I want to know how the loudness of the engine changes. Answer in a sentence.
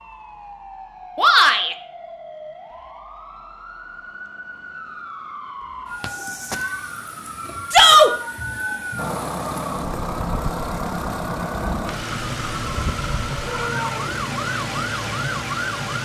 The loudness of the engine stays about the same.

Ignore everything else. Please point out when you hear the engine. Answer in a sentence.
You can hear the engine from 8.9 to 16.0 s.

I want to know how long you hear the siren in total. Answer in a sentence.
The siren can be heard for 16 seconds in total.